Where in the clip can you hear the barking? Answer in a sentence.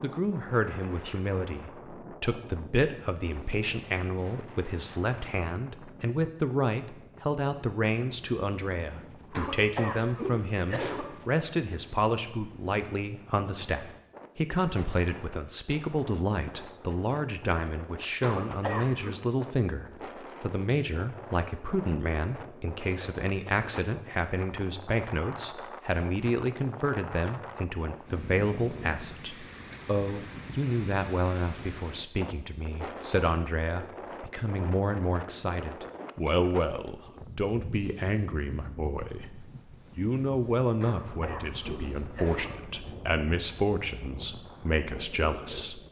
You can't hear the barking here.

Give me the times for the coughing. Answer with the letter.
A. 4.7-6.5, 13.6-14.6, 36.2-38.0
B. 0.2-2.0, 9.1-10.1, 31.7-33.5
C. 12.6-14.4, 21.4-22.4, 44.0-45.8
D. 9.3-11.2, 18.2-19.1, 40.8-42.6
D.